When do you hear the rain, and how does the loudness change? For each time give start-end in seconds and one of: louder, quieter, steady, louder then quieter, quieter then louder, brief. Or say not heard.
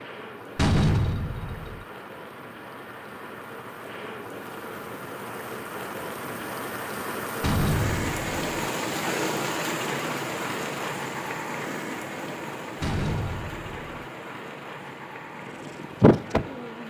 0.0-16.8 louder then quieter.